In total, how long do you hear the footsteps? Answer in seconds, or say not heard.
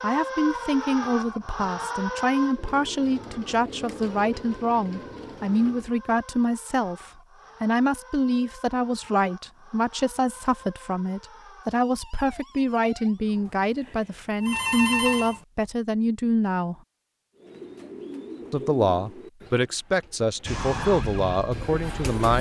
not heard.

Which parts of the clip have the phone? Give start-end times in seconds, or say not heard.
13.8-15.4.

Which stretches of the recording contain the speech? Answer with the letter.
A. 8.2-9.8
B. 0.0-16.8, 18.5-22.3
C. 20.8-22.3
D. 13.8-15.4
B.